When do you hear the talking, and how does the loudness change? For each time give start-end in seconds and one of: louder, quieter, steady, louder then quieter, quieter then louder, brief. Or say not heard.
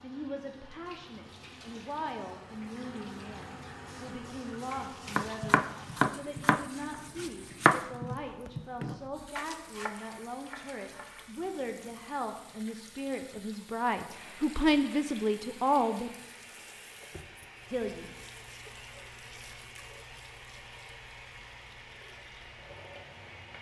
0.0-16.1 louder
17.7-18.1 brief.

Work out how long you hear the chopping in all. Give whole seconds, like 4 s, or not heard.
6 s.